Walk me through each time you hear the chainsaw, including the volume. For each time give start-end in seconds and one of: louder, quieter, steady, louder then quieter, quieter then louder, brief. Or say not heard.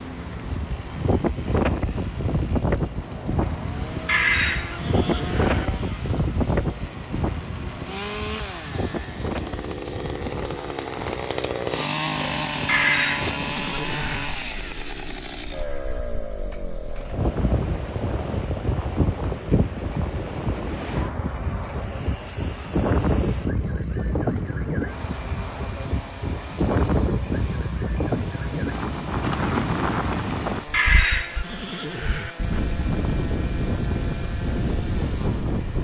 0.0-35.8 louder then quieter.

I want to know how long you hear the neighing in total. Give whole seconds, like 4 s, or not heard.
5 s.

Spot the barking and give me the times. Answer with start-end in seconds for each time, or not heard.
not heard.